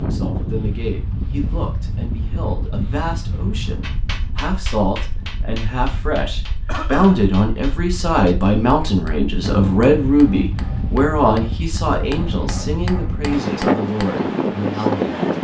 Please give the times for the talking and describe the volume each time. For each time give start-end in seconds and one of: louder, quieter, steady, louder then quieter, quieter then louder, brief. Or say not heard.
0.0-15.2 louder then quieter.